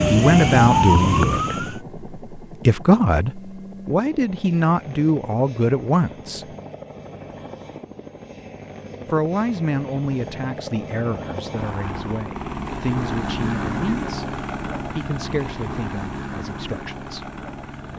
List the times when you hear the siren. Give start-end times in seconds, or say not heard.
0.0-1.8.